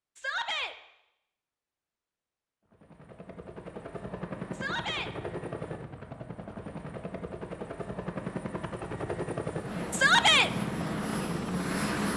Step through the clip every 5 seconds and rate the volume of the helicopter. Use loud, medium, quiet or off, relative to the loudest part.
medium, medium, loud.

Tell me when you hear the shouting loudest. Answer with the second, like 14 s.
10 s.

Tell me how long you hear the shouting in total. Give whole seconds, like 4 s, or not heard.
2 s.